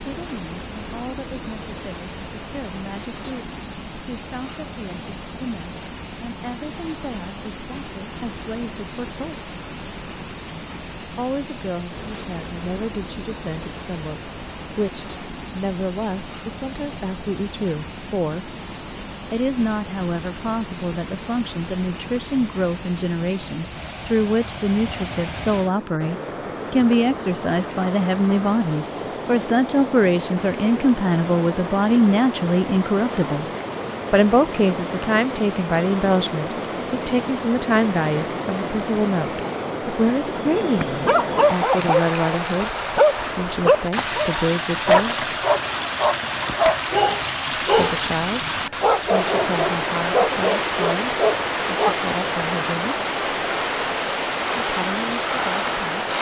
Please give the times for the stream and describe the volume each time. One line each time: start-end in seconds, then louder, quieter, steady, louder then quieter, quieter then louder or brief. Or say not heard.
0.0-56.1 louder.